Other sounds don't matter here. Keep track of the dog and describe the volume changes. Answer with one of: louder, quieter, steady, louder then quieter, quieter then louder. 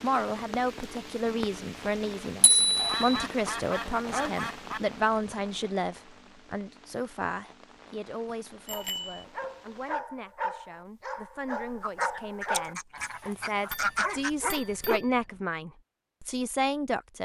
steady.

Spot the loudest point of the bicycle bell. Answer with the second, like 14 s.
3 s.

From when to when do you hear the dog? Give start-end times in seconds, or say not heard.
8.7-15.0.